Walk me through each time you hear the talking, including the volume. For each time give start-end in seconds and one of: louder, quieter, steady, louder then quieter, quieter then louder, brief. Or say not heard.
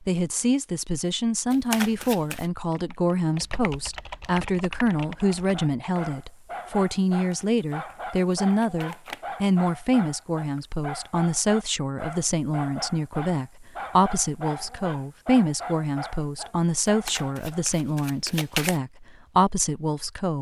0.0-20.3 steady.